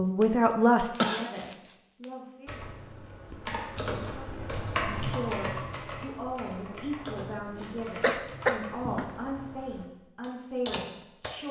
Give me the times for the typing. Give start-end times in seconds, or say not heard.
2.5-11.4.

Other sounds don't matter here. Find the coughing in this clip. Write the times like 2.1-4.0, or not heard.
0.9-1.8, 7.6-9.1.